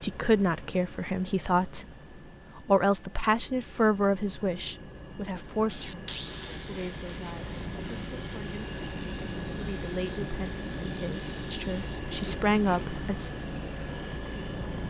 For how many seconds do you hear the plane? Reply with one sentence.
You can hear the plane for 15 seconds altogether.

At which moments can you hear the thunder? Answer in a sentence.
The thunder can't be heard in this clip.